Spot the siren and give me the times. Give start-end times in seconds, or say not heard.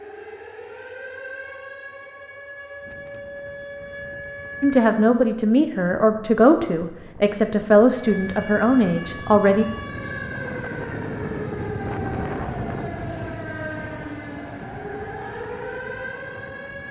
0.0-5.1, 7.9-16.8.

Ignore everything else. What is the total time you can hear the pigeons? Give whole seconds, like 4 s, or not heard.
not heard.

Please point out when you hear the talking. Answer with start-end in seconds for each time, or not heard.
4.6-9.7.